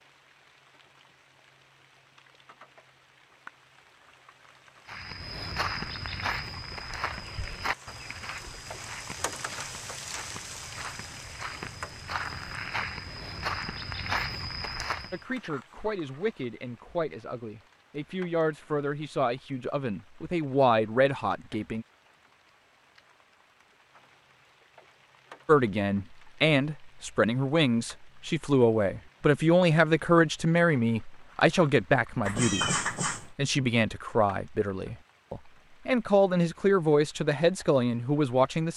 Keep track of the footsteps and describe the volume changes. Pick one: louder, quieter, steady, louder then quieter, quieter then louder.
quieter then louder.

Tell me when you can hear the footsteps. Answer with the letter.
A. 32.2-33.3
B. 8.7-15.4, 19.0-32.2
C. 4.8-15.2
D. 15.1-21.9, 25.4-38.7
C.